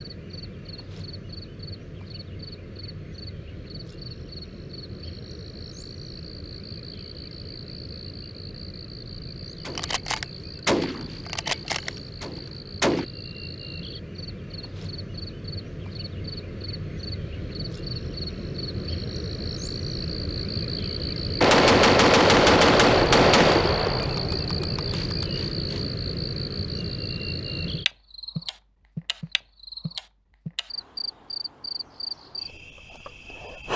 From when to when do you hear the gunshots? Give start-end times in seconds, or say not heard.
9.7-13.1, 21.4-25.2.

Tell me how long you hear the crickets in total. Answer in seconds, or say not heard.
34 s.